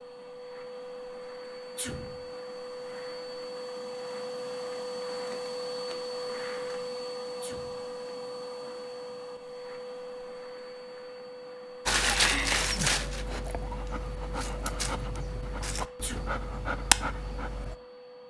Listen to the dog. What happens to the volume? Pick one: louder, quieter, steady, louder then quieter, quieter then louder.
quieter then louder.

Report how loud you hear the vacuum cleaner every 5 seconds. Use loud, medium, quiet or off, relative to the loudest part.
loud, loud, medium, medium.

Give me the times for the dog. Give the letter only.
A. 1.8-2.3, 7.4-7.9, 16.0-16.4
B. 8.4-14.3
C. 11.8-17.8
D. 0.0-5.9
C.